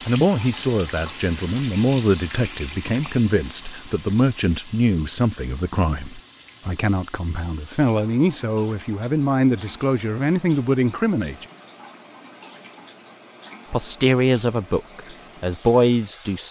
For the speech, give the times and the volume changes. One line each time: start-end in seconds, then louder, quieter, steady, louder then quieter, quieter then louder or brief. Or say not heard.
0.1-11.4 steady
13.7-16.4 brief.